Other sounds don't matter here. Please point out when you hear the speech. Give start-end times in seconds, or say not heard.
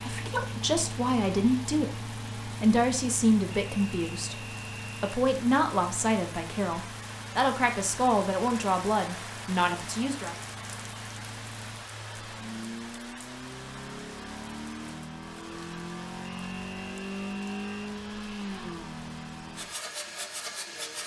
0.0-10.3.